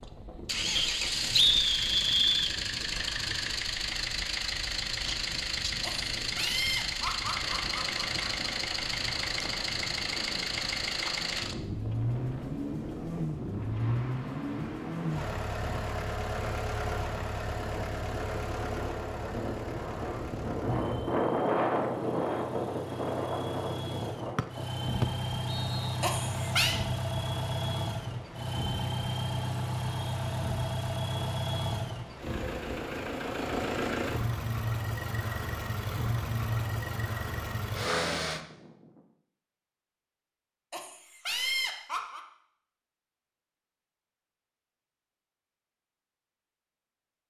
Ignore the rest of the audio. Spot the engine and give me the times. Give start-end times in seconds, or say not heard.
0.1-38.5.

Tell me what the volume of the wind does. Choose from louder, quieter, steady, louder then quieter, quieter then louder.
louder then quieter.